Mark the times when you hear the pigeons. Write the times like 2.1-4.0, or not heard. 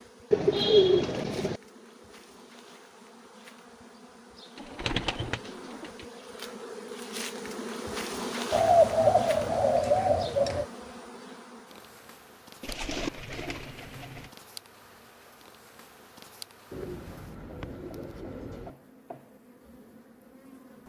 0.3-1.6, 4.5-6.0, 8.5-10.7, 12.6-14.3, 16.7-18.7.